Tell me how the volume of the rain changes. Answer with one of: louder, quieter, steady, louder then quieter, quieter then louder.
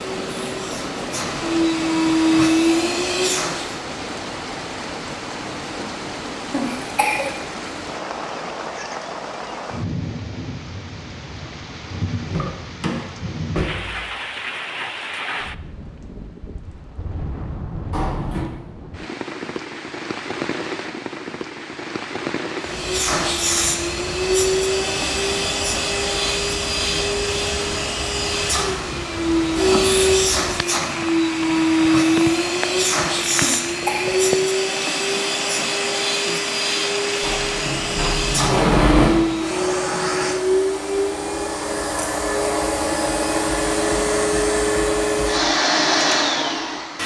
steady.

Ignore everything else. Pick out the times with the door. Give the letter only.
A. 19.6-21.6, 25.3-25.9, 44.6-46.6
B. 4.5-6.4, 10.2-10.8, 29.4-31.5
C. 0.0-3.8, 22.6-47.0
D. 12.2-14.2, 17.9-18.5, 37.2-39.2
D.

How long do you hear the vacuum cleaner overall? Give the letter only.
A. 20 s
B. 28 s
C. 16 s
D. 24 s
B.